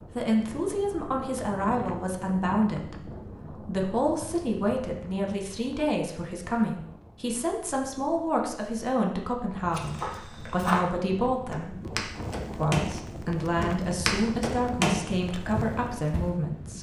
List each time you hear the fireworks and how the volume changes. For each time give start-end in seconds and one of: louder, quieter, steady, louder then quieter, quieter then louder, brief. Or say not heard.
not heard.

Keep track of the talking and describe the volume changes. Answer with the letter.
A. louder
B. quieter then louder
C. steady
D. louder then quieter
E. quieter
C.